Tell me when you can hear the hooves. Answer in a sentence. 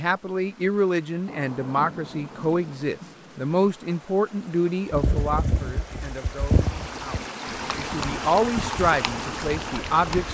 You can hear the hooves from 4.9 to 10.2 s.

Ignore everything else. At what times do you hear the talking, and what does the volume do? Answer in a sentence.
You can hear the talking from 0.0 to 10.2 s, getting quieter then louder.